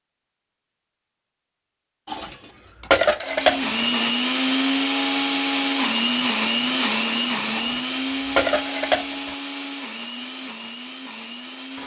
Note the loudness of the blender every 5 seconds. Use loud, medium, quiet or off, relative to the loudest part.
loud, loud, quiet.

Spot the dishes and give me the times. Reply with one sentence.
The dishes can be heard from 2.0 to 3.7 s and from 7.5 to 9.3 s.